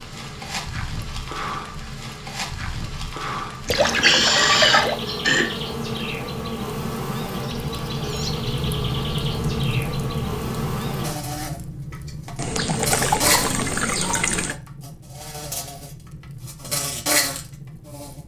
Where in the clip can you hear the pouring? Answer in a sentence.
The pouring can be heard from 3.6 to 5.0 s and from 12.3 to 14.6 s.